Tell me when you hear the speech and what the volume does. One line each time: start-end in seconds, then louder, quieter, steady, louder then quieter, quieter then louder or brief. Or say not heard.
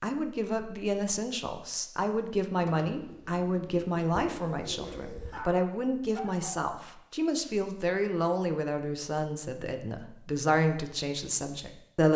0.0-12.1 steady.